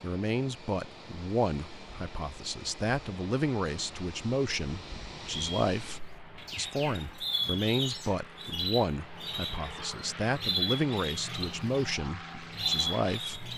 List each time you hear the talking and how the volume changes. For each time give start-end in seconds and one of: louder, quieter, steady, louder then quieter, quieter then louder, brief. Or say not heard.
0.0-13.5 steady.